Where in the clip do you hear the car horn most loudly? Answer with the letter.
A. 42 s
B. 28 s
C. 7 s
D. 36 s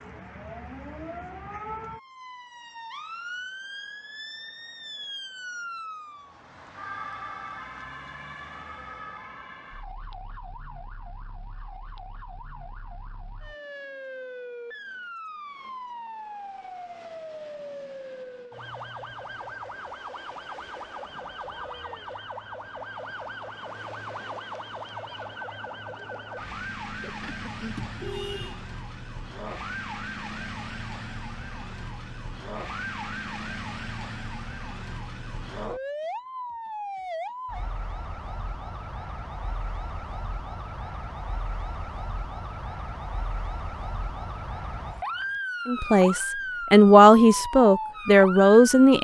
B.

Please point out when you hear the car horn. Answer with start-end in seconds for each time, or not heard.
26.9-28.6.